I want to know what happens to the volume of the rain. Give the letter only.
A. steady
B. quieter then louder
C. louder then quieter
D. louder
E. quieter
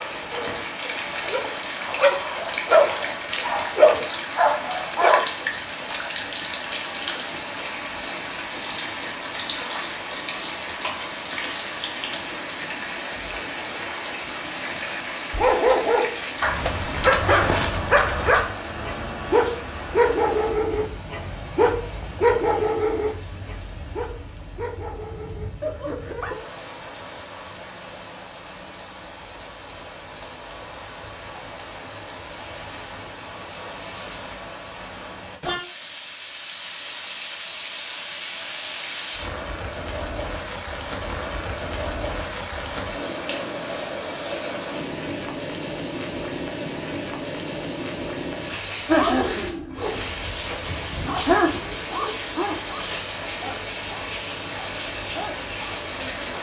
B.